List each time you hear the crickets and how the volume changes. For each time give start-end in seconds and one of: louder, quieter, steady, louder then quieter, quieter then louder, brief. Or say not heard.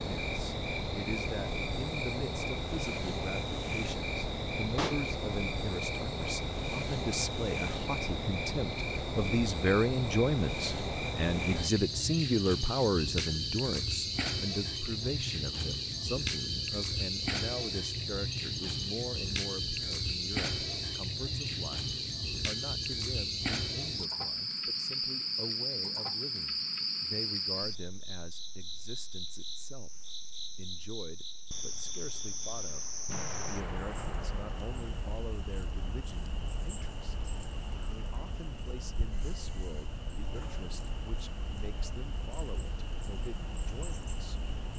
0.0-44.7 quieter.